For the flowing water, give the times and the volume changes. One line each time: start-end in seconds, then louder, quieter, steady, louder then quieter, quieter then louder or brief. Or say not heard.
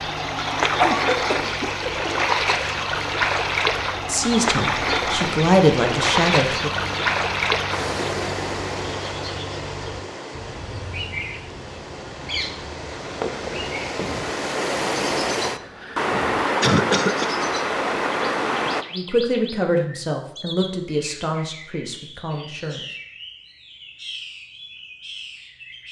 0.0-18.9 quieter then louder.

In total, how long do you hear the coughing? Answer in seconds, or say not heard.
2 s.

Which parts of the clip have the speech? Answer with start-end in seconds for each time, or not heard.
4.0-6.7, 18.9-22.8.